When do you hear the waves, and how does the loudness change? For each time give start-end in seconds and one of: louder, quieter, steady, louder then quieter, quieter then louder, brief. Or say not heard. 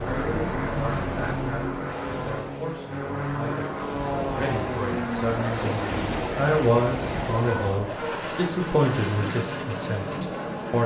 0.0-7.9 quieter then louder.